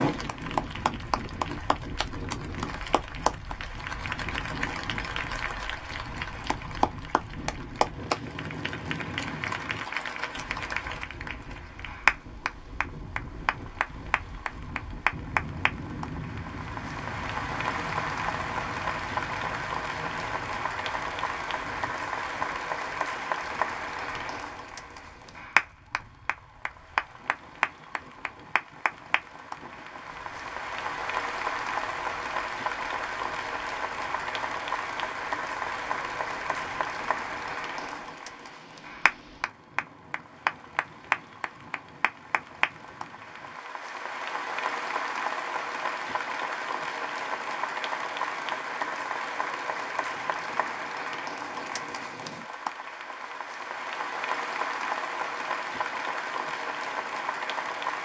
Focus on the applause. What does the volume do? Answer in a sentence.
The loudness of the applause stays about the same.